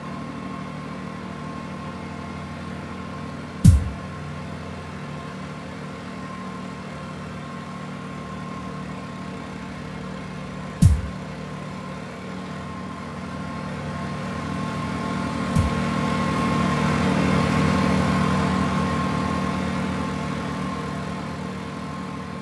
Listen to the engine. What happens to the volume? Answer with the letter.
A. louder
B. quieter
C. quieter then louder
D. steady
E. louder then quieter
A.